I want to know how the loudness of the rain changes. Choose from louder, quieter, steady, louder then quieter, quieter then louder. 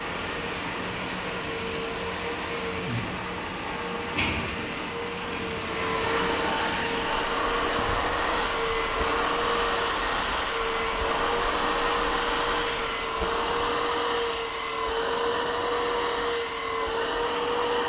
steady.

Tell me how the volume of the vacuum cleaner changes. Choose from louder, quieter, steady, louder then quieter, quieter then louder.
louder.